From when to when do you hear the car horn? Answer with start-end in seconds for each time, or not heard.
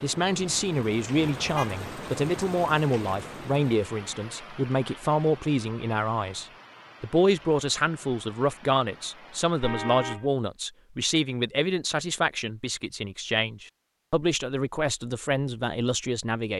1.2-1.8, 9.6-10.3.